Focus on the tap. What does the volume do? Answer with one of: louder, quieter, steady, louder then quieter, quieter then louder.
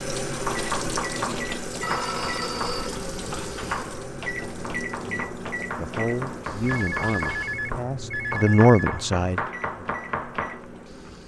quieter.